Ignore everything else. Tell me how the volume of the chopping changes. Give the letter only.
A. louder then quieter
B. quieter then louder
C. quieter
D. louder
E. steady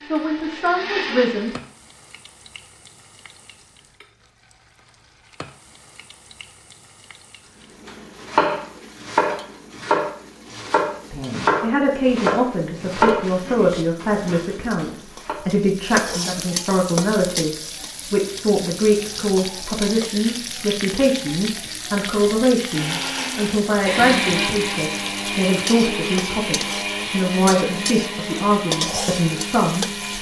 C.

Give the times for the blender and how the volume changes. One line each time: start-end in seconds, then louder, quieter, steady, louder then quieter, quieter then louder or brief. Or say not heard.
0.0-1.6 brief
22.7-30.1 quieter.